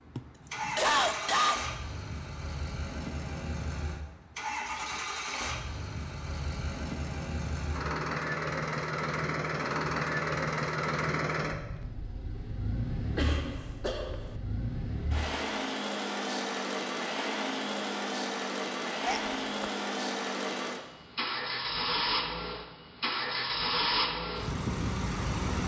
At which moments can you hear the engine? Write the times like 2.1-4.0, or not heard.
0.0-25.6.